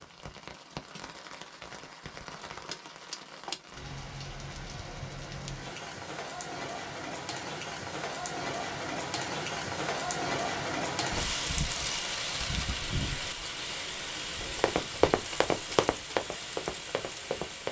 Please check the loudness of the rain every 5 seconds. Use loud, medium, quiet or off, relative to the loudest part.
medium, loud, loud, medium.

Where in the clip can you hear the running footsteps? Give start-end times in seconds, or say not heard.
14.4-17.6.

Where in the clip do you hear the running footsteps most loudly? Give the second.
15 s.